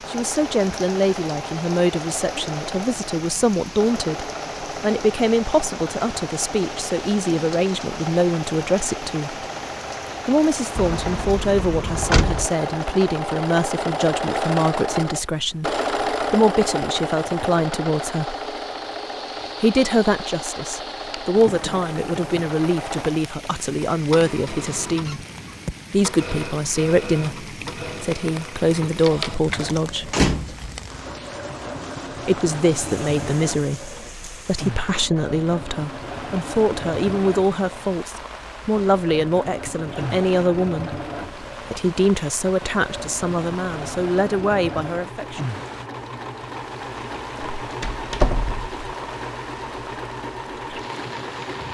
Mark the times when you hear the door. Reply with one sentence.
The door can be heard from 10.8 to 12.5 s, from 30.1 to 30.8 s and from 47.6 to 48.7 s.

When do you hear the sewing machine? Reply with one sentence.
The sewing machine can be heard from 0.0 to 51.7 s.